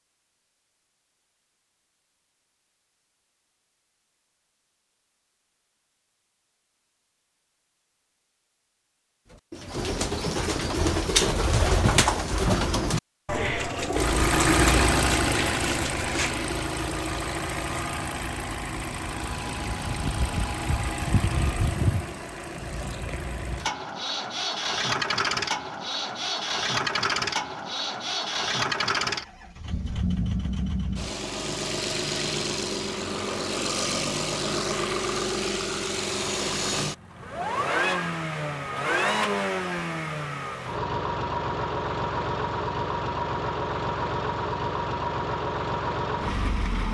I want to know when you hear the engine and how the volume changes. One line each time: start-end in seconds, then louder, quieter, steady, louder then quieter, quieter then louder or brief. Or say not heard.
13.9-46.8 steady.